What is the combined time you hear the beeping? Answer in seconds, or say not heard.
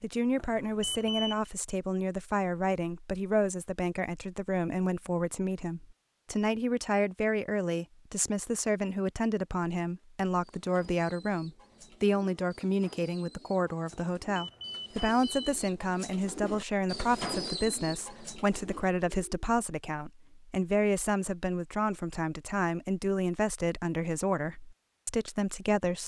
3 s.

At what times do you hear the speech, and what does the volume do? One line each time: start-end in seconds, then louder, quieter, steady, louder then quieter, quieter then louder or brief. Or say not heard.
0.0-26.0 steady.